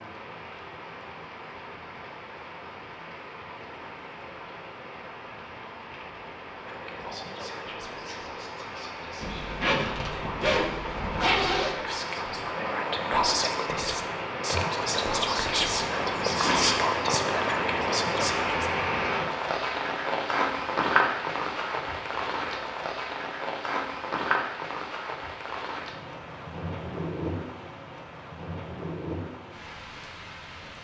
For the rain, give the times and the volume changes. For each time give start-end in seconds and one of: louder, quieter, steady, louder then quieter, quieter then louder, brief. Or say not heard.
0.0-30.8 louder then quieter.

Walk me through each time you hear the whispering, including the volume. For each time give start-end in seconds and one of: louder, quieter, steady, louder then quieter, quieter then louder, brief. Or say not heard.
6.5-18.7 louder.